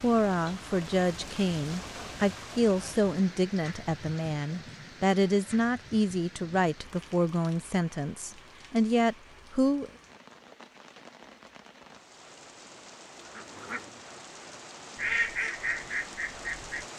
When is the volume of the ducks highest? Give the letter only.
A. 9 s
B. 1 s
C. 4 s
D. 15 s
D.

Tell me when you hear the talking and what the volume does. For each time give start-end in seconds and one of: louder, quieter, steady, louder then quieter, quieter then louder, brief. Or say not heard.
0.0-9.9 steady.